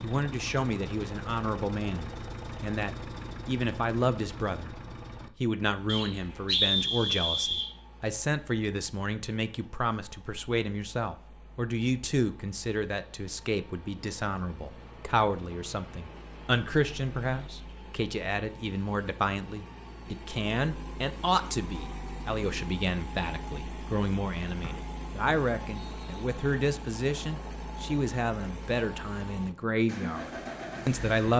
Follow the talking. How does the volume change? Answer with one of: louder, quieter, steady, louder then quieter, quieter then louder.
steady.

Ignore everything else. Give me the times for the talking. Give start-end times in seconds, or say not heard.
0.0-4.7, 5.4-31.3.